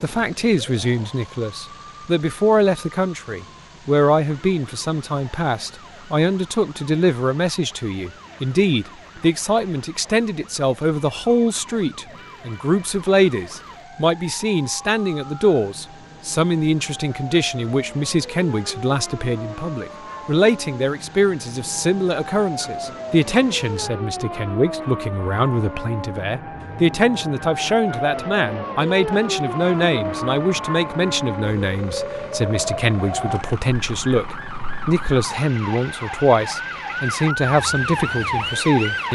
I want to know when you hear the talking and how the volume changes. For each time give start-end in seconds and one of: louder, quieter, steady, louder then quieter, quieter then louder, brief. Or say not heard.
0.0-39.1 steady.